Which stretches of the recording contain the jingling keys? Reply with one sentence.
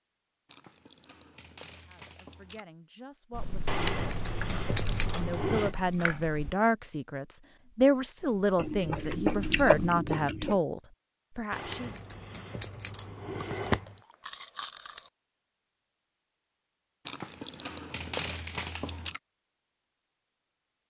You can hear the jingling keys from 3.6 to 5.7 s and from 11.5 to 13.9 s.